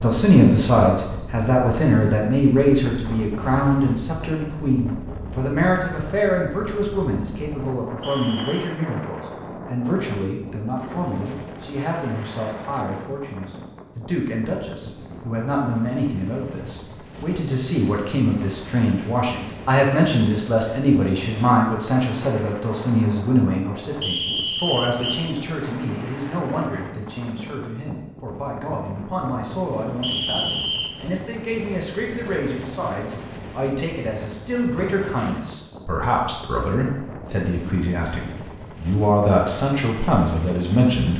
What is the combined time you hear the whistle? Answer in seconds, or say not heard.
3 s.